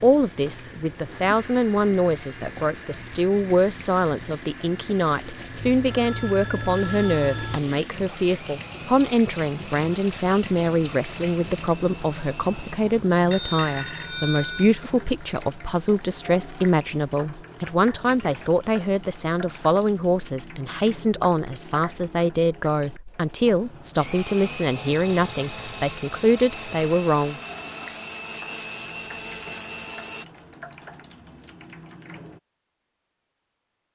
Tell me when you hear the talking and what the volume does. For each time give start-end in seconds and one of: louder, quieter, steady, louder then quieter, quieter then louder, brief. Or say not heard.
0.0-27.4 steady.